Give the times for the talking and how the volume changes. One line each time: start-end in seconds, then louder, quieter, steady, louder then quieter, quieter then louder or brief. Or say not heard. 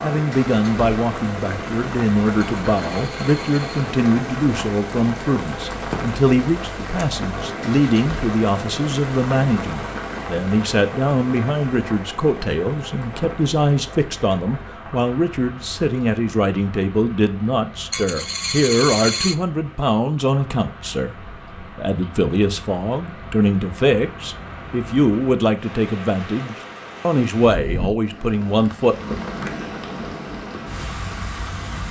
0.0-28.9 steady.